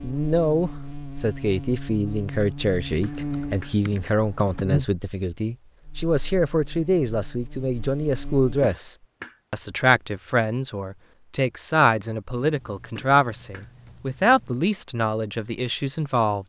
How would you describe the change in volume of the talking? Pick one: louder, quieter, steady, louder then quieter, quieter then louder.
steady.